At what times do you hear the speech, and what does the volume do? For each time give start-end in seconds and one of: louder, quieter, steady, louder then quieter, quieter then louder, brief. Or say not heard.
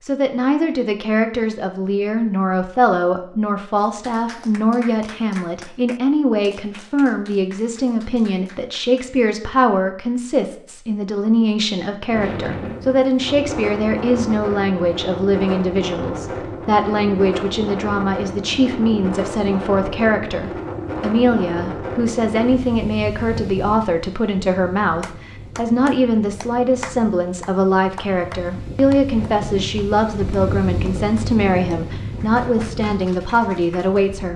0.0-34.3 steady.